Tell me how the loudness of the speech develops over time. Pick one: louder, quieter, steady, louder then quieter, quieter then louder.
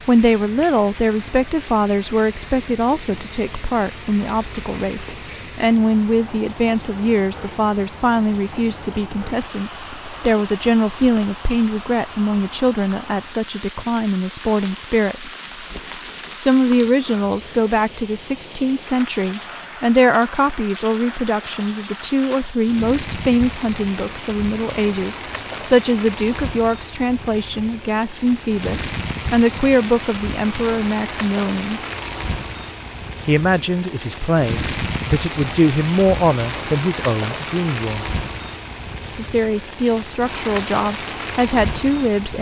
steady.